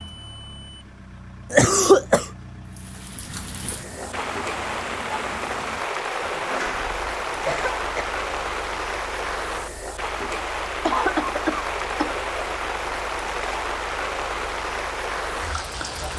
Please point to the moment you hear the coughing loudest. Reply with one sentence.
The loudest moment of the coughing is at 2 seconds.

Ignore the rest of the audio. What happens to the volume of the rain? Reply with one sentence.
The loudness of the rain stays about the same.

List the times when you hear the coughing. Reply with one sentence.
The coughing can be heard from 1.5 to 2.2 s, from 6.5 to 8.1 s and from 10.8 to 12.2 s.